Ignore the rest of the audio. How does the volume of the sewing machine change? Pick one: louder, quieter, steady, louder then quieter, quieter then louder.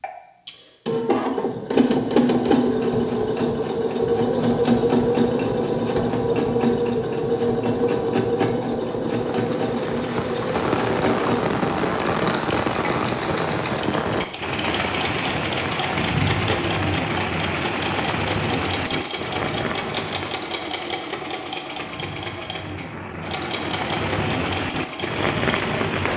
quieter.